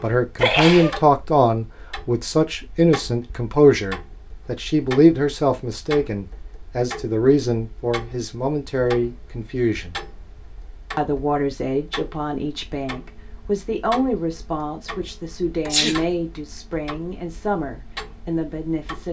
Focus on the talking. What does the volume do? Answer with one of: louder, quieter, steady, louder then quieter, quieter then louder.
quieter.